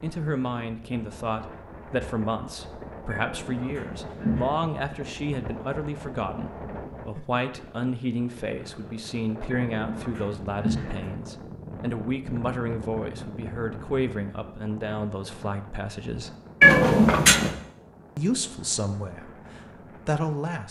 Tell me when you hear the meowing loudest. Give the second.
17 s.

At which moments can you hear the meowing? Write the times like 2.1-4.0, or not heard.
3.1-4.5, 9.4-11.2, 16.6-17.6.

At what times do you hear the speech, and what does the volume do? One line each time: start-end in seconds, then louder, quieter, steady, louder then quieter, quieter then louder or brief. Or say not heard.
0.0-16.3 steady
18.1-20.6 brief.